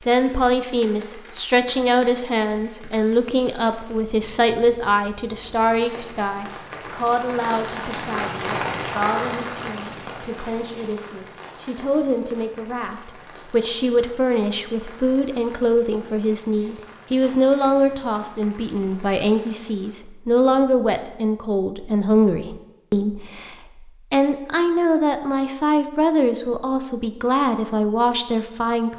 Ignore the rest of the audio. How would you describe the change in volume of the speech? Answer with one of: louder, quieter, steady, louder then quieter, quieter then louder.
quieter then louder.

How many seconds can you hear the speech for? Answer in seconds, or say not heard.
29 s.